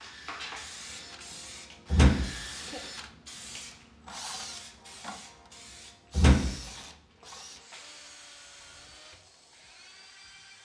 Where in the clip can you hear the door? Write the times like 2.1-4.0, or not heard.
1.9-2.8, 6.2-6.6.